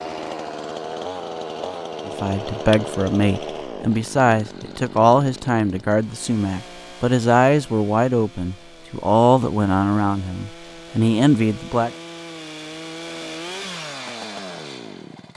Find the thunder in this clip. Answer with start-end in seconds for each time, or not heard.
not heard.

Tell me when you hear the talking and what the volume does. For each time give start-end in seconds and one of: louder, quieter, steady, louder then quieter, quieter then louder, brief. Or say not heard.
2.0-11.9 steady.